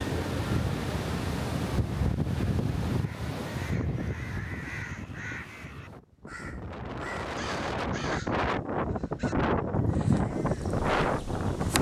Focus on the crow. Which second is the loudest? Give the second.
10 s.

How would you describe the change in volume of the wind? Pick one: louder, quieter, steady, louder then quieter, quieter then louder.
quieter then louder.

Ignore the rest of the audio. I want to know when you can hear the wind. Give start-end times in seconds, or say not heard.
0.0-11.7.